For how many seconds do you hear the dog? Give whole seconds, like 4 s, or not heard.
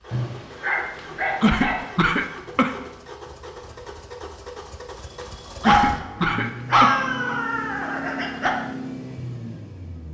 5 s.